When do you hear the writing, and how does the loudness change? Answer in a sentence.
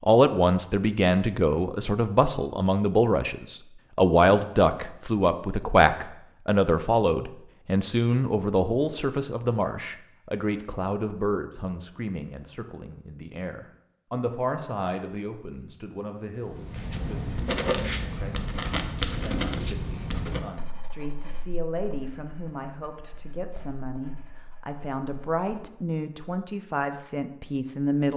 The writing can be heard from 16.4 to 25.8 s, getting quieter.